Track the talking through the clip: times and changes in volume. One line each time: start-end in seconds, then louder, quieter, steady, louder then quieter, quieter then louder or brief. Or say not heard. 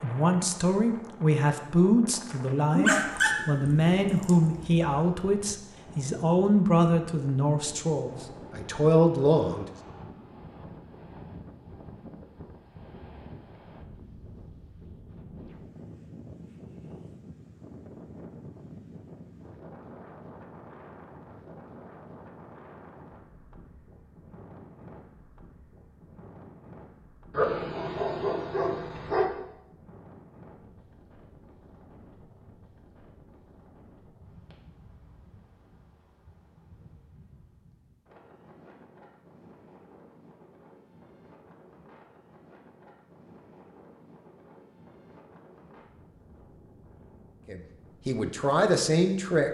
0.0-9.7 steady
47.5-49.5 brief.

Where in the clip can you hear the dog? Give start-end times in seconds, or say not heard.
2.8-5.2, 27.3-29.3.